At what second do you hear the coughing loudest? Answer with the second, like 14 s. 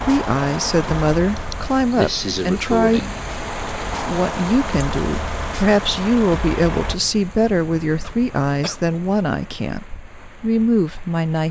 3 s.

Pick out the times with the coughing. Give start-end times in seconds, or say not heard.
1.4-3.2, 8.0-8.8.